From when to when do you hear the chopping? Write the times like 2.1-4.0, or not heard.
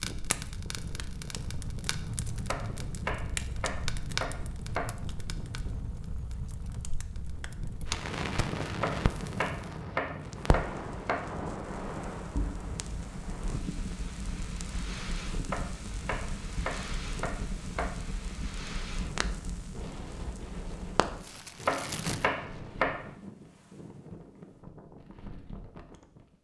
2.5-5.0, 8.8-11.2, 15.5-17.9, 21.6-23.1.